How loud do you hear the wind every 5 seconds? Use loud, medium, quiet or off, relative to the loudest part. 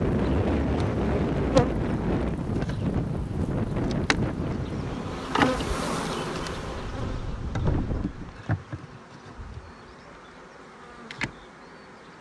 loud, medium, off.